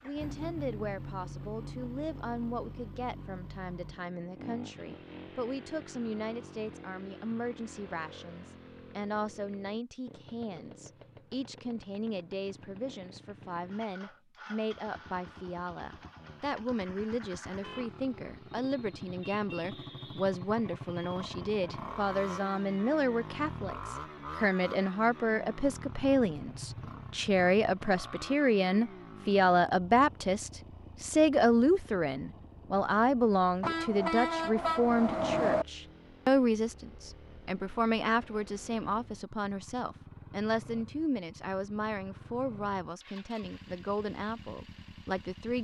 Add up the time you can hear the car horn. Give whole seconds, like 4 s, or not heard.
2 s.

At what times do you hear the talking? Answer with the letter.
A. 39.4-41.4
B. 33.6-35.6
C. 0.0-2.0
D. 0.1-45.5
D.